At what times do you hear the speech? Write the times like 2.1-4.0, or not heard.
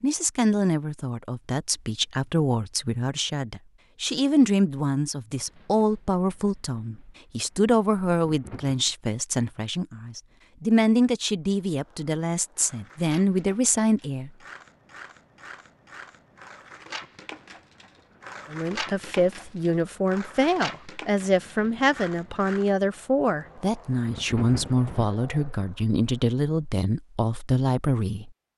0.0-14.3, 18.5-28.3.